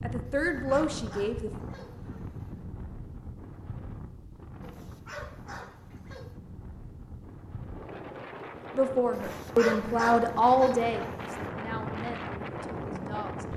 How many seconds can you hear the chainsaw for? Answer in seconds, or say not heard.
not heard.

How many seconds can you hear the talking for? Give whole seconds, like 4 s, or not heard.
6 s.